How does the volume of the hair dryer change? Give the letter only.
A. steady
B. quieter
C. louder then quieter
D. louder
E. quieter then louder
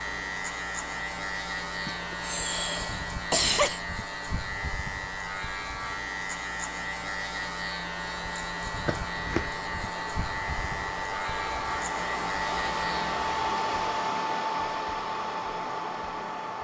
D.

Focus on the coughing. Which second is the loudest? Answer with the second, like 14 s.
3 s.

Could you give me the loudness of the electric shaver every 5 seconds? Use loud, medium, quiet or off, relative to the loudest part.
loud, loud, loud, off.